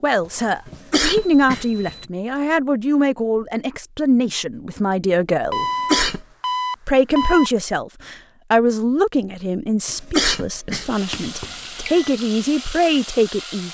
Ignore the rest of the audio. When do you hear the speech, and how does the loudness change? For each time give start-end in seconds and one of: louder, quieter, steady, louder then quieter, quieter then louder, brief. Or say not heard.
0.0-5.7 steady
6.8-13.7 quieter then louder.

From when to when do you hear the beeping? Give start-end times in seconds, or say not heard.
0.2-2.1, 5.5-7.5, 11.1-12.2.